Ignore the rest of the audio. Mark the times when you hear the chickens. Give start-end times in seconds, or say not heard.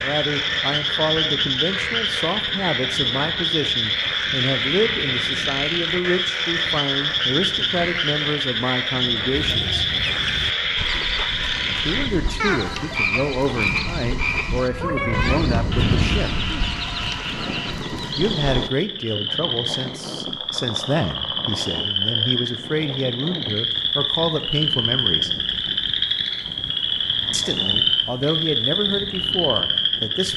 9.3-18.7.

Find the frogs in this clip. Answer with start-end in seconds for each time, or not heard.
0.0-30.3.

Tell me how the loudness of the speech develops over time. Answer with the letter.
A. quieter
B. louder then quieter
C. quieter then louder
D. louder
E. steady
E.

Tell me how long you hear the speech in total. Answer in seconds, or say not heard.
25 s.